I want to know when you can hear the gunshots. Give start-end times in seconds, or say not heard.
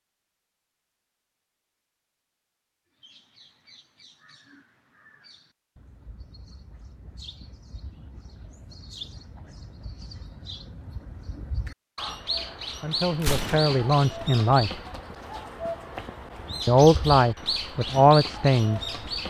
13.2-13.8.